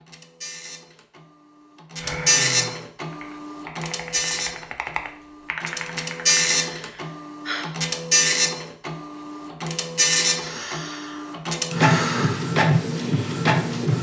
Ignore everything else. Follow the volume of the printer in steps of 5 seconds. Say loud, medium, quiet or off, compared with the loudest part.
medium, loud, loud.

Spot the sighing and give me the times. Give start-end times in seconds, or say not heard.
2.0-2.8, 6.7-7.7, 10.3-12.4.